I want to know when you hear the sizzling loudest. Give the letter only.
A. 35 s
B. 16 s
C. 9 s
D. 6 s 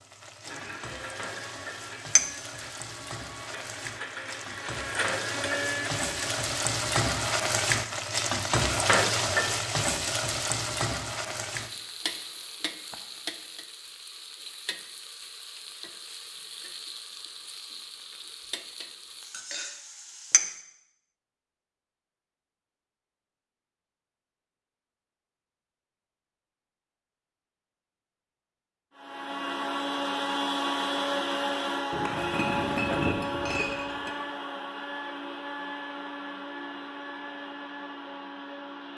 C.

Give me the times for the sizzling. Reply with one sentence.
You can hear the sizzling from 0.0 to 20.6 s.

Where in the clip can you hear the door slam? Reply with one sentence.
The door slam can't be heard in this clip.